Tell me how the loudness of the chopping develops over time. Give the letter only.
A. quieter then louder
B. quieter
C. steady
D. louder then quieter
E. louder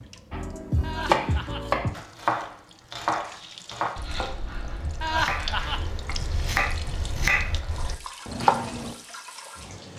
A.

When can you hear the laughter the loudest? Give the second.
5 s.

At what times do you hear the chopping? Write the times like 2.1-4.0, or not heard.
0.3-8.9.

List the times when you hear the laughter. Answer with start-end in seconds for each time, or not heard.
0.8-1.9, 5.0-5.8.